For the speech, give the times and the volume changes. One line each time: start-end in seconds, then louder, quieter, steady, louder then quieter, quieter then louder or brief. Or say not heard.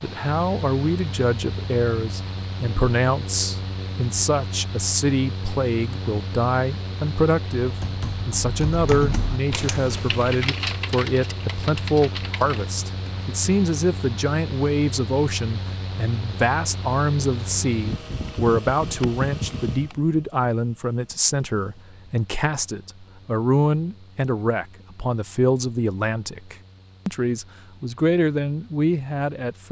0.0-29.6 steady.